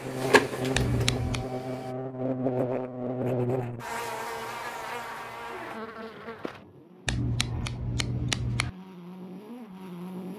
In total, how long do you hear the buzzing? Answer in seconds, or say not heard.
10 s.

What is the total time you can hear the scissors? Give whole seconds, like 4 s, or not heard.
2 s.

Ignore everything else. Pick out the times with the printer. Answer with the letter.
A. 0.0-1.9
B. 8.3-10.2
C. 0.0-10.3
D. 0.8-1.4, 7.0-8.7
A.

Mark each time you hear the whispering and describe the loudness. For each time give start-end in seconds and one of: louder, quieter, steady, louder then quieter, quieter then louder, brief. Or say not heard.
not heard.